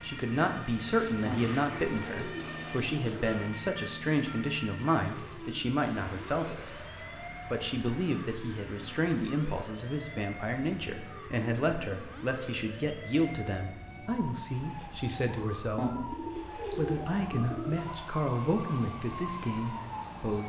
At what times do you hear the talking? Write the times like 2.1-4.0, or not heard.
0.0-6.8, 7.5-16.0, 16.8-20.4.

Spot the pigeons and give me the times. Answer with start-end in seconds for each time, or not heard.
1.2-3.2, 15.8-17.8.